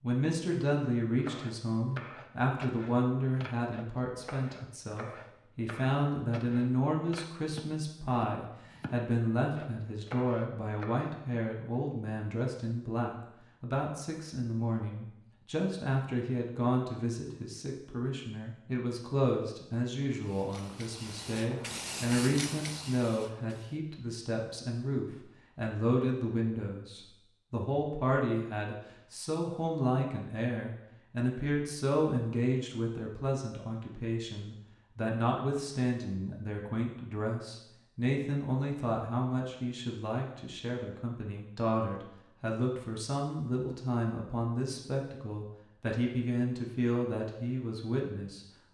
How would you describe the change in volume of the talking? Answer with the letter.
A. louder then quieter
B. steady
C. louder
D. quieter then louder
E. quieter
B.